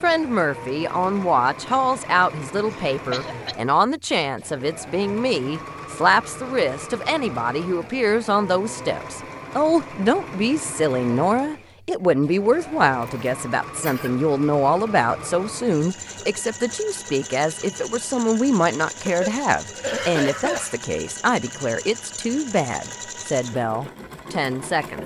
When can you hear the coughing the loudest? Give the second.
20 s.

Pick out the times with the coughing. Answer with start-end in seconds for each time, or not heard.
2.9-3.5, 13.2-14.1, 19.1-20.8.